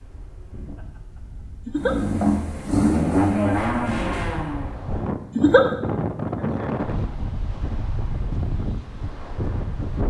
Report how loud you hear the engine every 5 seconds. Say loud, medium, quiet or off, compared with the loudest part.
loud, off.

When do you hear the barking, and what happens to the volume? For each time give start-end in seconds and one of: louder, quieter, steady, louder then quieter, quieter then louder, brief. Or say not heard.
not heard.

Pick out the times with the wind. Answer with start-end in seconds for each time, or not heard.
0.0-10.0.